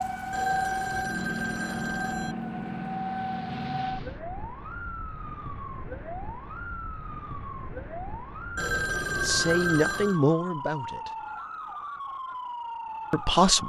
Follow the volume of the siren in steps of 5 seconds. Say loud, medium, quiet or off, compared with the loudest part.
loud, medium, loud.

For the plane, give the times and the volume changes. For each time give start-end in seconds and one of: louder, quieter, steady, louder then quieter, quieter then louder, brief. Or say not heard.
0.0-4.2 louder.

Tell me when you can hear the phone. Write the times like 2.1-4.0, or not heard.
0.3-2.4, 8.6-10.2.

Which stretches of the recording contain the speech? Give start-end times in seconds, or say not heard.
9.2-11.1, 13.1-13.6.